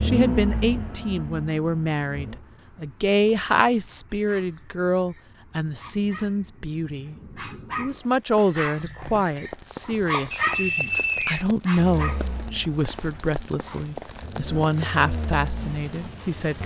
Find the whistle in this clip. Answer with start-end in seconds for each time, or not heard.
10.3-11.4.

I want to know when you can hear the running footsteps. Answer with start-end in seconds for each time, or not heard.
not heard.